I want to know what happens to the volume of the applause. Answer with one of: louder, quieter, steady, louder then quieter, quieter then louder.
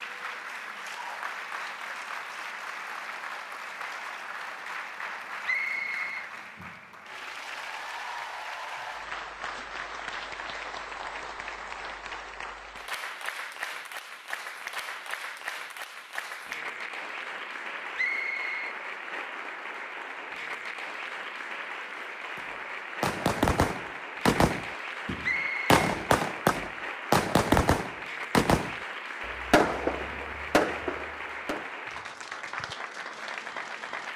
steady.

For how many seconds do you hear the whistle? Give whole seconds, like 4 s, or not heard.
2 s.